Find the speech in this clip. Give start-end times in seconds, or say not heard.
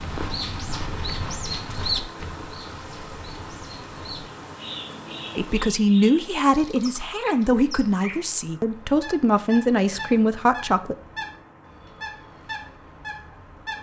5.3-10.9.